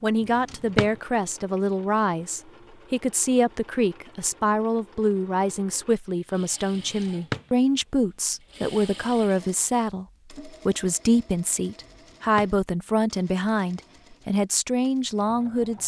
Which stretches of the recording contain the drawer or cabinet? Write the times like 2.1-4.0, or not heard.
0.2-0.9, 6.8-7.5, 11.8-12.5.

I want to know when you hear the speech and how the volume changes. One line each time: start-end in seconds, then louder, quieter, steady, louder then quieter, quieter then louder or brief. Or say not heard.
0.0-15.8 steady.